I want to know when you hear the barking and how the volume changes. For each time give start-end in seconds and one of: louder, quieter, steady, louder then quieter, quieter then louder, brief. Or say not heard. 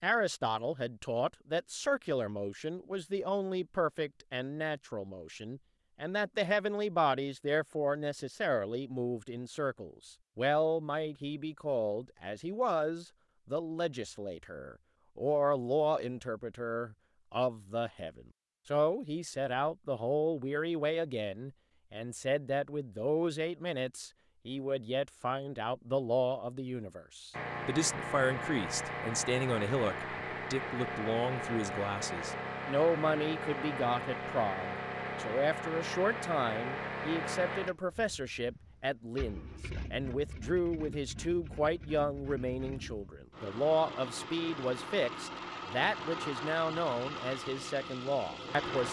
not heard.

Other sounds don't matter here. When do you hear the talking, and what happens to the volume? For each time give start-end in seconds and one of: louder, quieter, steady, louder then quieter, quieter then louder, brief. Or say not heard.
0.0-48.8 steady.